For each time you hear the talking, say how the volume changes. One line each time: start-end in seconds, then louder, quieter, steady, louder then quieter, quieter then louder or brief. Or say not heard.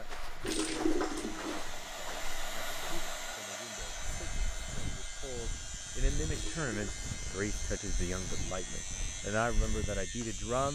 0.0-10.7 louder.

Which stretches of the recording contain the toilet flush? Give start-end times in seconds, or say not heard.
0.4-1.8, 6.3-7.0.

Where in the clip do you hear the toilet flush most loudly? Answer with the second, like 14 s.
1 s.